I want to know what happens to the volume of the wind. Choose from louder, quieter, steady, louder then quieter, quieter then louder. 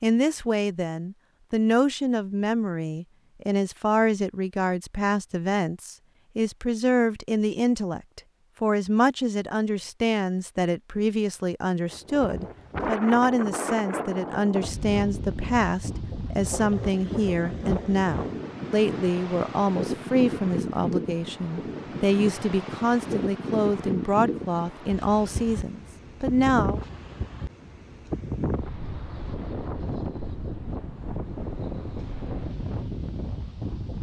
steady.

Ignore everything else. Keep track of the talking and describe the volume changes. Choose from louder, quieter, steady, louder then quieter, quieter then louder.
steady.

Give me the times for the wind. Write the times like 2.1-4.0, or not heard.
11.9-33.9.